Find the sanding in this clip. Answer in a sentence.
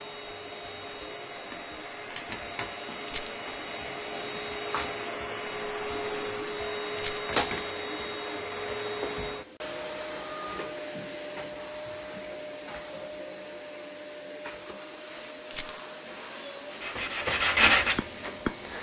The sanding can be heard from 16.6 to 18.7 s.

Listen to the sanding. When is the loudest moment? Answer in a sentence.
The loudest moment of the sanding is at 18 seconds.